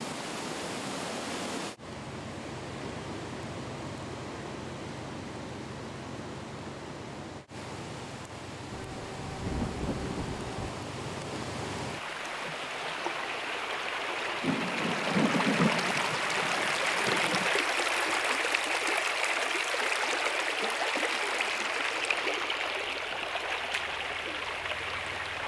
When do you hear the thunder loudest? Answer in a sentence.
The loudest moment of the thunder is at 16 seconds.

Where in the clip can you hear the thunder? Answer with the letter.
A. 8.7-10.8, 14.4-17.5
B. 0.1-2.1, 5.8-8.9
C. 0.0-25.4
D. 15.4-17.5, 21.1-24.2
A.